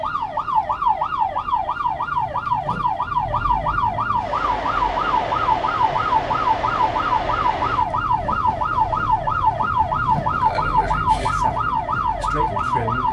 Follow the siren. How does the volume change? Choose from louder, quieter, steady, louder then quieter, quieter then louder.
steady.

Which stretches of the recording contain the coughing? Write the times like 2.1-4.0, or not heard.
not heard.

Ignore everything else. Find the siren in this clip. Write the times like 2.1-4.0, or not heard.
0.0-13.0.